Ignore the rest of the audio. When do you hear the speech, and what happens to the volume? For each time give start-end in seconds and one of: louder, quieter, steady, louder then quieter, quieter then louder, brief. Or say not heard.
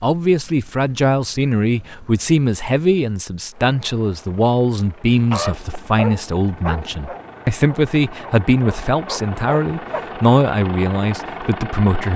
0.0-12.1 steady.